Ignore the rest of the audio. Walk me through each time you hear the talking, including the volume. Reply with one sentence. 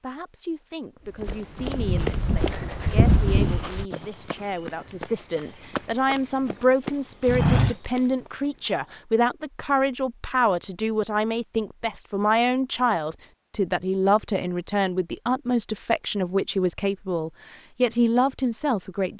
You can hear the talking from 0.0 to 19.1 s, getting louder.